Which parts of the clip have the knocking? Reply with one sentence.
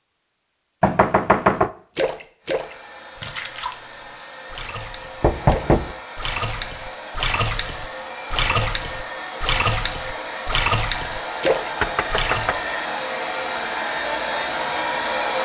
You can hear the knocking from 0.8 to 1.7 s, from 5.2 to 6.0 s and from 11.8 to 12.6 s.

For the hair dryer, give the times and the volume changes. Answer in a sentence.
The hair dryer can be heard from 2.4 to 15.4 s, getting louder.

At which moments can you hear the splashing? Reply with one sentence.
The splashing can be heard from 1.9 to 12.6 s.